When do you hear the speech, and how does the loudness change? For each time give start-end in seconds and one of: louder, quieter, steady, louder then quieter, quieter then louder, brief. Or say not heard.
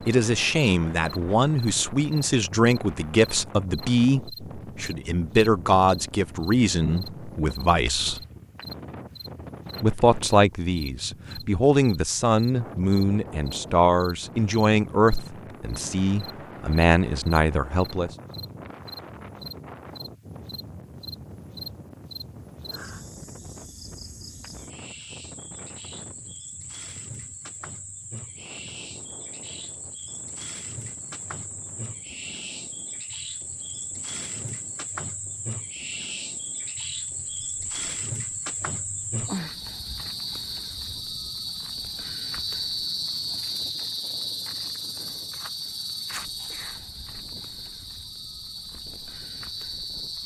0.1-8.2 steady
9.8-18.1 steady.